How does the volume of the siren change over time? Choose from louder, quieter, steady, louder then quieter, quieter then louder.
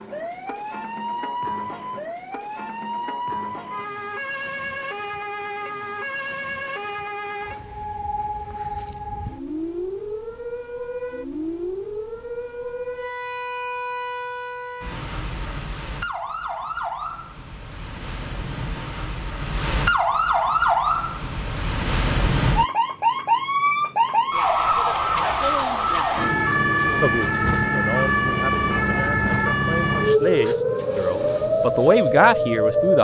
louder.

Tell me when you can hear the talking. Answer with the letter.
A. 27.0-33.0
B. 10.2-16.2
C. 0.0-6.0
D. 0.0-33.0
A.